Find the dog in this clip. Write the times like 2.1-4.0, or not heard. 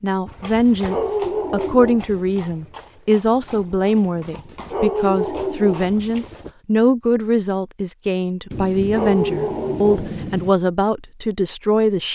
0.5-2.1, 4.2-6.0, 8.5-10.2.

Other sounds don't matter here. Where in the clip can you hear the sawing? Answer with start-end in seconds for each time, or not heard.
not heard.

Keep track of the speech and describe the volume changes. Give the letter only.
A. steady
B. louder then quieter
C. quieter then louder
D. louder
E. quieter
A.